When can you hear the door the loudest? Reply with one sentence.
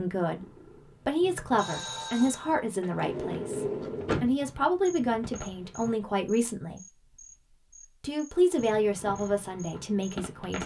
The loudest moment of the door is at 4 seconds.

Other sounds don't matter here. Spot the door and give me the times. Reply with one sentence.
You can hear the door from 2.8 to 4.3 s.